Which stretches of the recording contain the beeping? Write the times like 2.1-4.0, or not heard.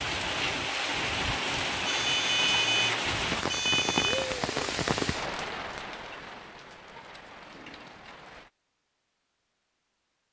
1.9-4.3.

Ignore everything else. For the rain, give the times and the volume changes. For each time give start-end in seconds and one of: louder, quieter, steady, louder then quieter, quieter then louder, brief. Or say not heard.
0.0-8.5 quieter.